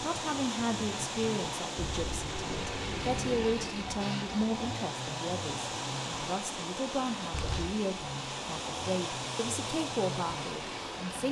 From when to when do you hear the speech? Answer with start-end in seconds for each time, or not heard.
0.0-11.2.